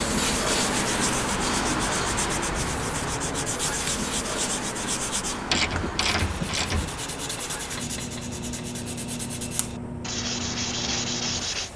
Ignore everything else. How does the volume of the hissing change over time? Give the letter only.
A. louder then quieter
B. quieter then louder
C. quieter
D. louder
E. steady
C.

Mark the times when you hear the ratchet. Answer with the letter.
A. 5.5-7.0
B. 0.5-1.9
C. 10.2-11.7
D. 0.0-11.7
A.